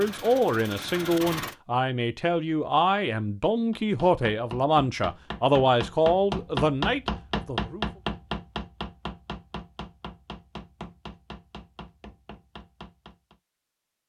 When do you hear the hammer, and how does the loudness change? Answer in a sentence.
You can hear the hammer from 3.7 to 13.4 s, getting louder then quieter.